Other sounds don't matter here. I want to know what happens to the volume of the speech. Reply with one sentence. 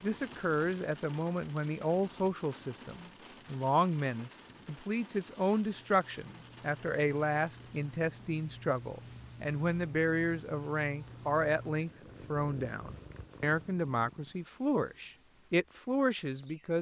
The loudness of the speech stays about the same.